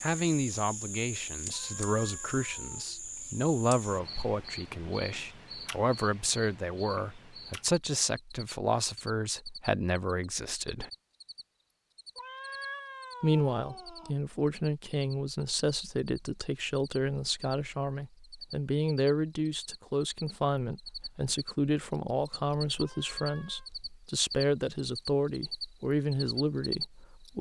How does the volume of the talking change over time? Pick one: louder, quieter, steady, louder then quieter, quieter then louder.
steady.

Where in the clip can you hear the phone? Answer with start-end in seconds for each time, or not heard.
not heard.